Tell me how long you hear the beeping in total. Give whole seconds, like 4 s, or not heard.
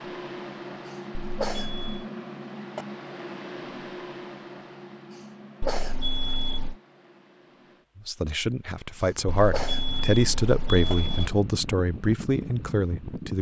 4 s.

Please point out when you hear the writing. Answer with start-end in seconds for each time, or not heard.
not heard.